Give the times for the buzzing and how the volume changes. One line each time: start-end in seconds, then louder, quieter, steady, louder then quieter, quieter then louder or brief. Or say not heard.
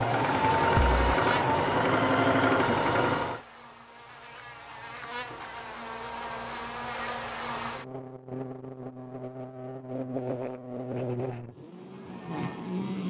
0.0-13.0 quieter then louder.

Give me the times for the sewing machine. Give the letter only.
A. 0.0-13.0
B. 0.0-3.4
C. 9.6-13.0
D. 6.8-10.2
B.